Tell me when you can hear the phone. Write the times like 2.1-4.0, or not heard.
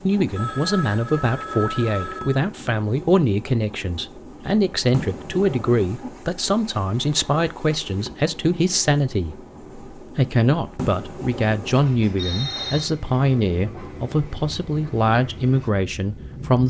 0.3-2.4, 12.2-12.9.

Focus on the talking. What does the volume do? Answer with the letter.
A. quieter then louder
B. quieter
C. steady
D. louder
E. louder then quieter
C.